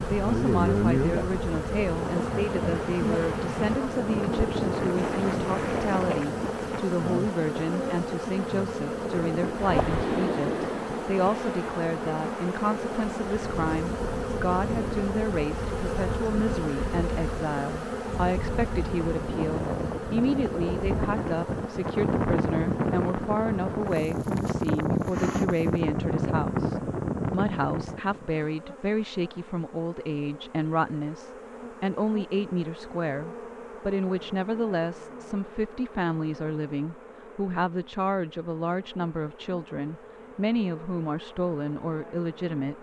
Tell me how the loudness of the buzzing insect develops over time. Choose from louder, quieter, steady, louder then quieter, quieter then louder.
quieter.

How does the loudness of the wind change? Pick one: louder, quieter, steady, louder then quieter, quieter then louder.
quieter then louder.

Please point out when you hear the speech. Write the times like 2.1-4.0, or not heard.
0.1-42.7.